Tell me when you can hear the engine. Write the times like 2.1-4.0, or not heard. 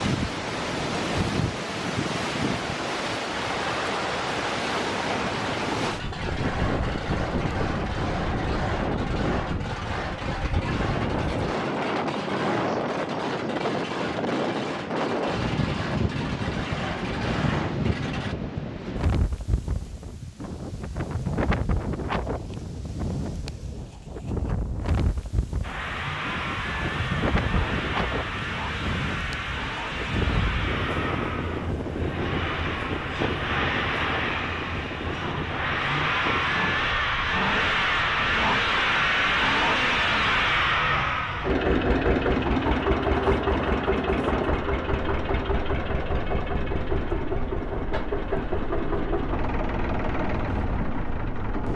3.3-18.4, 25.6-51.7.